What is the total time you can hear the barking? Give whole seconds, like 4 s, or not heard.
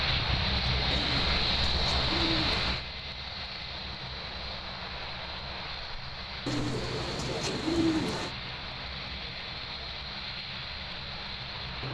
not heard.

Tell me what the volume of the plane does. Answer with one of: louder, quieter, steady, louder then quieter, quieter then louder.
quieter.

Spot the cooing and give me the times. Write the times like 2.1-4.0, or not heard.
0.9-2.9, 6.5-8.3.